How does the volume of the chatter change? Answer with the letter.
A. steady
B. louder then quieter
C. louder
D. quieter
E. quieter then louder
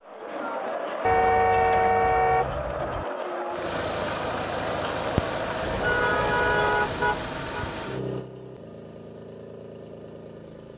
A.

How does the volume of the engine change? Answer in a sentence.
The loudness of the engine goes down.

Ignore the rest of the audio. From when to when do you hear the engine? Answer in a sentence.
The engine can be heard from 3.5 to 10.7 s.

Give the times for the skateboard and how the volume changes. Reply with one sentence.
You can't hear the skateboard here.